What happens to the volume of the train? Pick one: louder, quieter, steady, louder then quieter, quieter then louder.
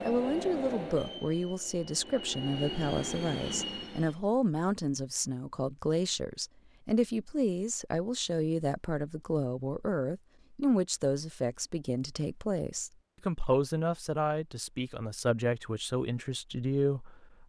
quieter then louder.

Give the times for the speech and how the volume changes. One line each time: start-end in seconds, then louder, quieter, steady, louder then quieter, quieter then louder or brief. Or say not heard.
0.1-17.4 steady.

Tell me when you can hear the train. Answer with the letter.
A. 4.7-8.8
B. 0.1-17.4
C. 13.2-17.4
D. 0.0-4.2
D.